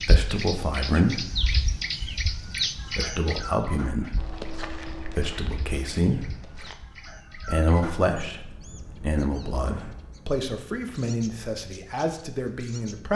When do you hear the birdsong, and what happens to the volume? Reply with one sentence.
The birdsong can be heard from 0.0 to 13.1 s, getting quieter.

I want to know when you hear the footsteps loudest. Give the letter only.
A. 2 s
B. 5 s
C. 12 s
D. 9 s
B.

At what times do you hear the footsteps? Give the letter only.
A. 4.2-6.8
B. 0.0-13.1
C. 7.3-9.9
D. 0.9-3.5
A.